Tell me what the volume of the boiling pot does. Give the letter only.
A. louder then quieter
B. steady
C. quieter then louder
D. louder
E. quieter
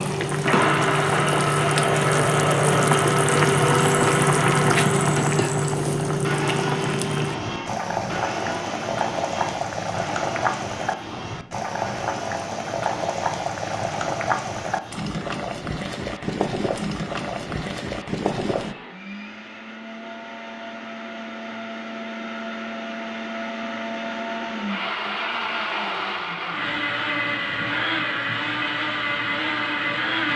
E.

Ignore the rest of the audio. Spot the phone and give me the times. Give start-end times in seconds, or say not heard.
not heard.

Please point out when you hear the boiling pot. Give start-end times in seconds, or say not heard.
0.0-18.8.